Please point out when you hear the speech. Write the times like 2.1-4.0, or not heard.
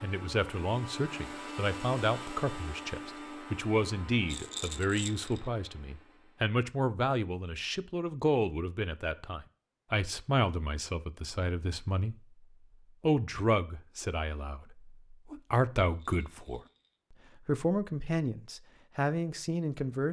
0.0-12.2, 13.0-16.6, 17.4-20.0.